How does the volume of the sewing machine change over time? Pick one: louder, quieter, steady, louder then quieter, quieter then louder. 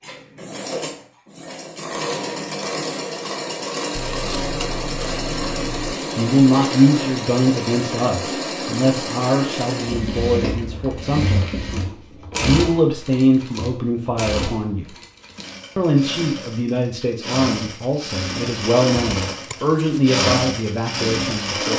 quieter then louder.